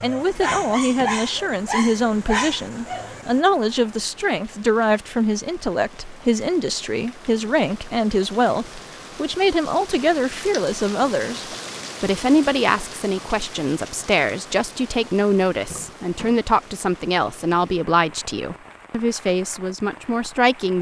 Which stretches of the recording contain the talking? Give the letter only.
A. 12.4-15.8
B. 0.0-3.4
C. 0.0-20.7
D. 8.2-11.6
C.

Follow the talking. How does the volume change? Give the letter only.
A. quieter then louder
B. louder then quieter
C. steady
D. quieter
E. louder
C.